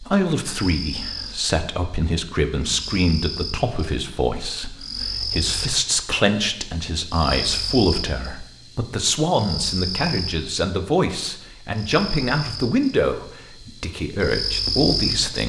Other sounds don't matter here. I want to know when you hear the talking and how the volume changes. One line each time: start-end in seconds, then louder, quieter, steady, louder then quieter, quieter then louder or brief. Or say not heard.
0.0-15.4 steady.